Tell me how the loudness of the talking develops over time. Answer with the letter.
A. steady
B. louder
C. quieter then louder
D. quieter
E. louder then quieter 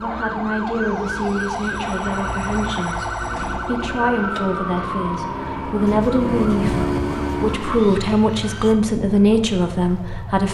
B.